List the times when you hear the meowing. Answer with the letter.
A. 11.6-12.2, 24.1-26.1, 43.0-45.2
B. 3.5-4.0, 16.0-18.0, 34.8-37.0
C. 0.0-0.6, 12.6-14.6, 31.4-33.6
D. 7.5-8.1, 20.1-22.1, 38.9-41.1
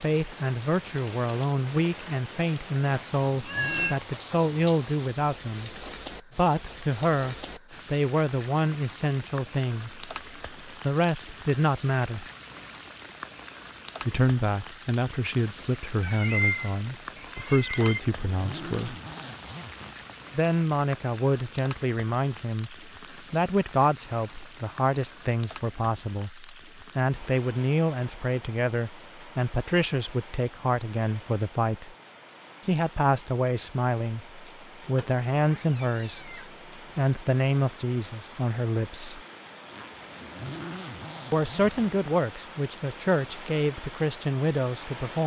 B.